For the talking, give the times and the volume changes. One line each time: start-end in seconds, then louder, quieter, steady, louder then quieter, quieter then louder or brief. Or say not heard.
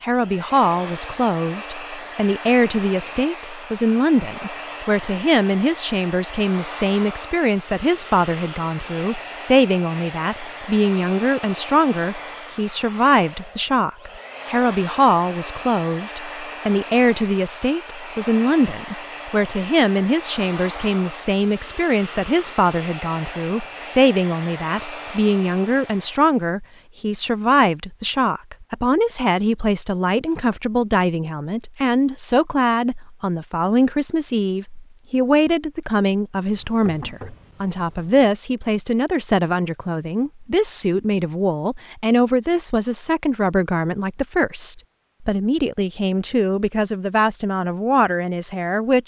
0.0-49.0 steady.